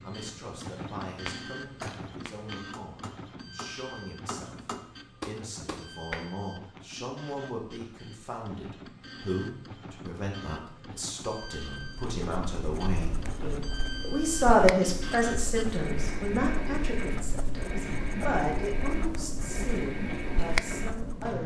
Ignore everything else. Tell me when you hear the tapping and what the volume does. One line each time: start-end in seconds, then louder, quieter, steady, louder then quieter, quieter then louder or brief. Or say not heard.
1.2-6.8 quieter then louder.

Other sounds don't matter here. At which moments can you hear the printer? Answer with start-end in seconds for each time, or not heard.
0.0-21.4.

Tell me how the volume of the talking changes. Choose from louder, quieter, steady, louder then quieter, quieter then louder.
louder then quieter.